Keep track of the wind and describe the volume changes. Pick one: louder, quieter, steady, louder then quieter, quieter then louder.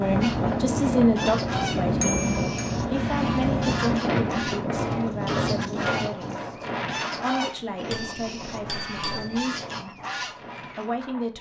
quieter.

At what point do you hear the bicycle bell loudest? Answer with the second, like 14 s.
2 s.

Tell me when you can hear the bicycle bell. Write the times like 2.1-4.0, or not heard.
2.0-2.8, 7.9-9.3.